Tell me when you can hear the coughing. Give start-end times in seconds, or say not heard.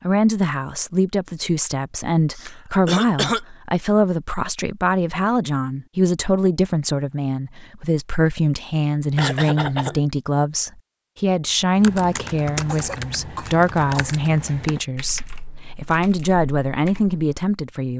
2.4-3.4, 9.2-10.0, 12.7-14.2.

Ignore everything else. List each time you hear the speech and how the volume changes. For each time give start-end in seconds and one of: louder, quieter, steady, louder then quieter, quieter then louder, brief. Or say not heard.
0.0-17.9 steady.